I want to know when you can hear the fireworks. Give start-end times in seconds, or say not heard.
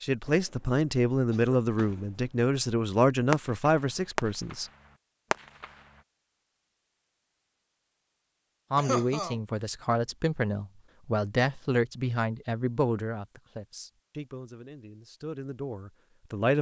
1.8-2.5, 3.3-4.5, 5.3-5.8.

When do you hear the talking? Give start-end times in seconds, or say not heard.
0.0-4.7, 8.7-16.5.